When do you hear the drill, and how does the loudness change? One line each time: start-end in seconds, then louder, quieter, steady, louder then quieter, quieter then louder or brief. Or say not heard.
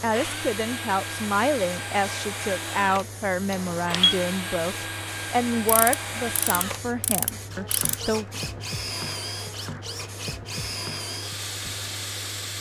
0.0-12.5 steady.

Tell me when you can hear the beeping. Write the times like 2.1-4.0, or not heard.
3.5-4.2.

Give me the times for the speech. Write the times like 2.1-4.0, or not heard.
0.0-8.3.